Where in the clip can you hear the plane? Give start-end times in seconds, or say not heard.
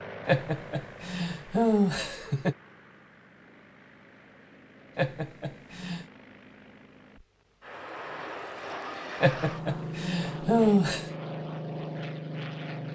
0.0-12.9.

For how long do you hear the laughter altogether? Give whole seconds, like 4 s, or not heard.
5 s.